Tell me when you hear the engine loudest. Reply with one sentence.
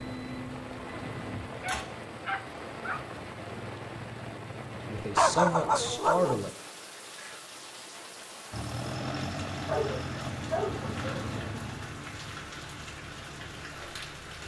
The loudest moment of the engine is at 9 seconds.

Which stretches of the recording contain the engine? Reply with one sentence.
You can hear the engine from 0.0 to 1.9 s and from 8.5 to 14.2 s.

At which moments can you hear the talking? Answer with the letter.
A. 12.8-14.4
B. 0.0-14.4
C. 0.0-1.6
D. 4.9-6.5
D.